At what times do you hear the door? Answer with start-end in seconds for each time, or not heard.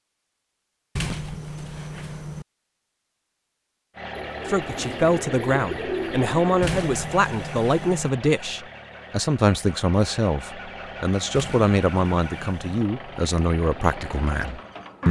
0.9-2.5, 6.6-8.1, 11.3-12.8.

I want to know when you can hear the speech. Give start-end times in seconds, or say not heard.
4.5-15.0.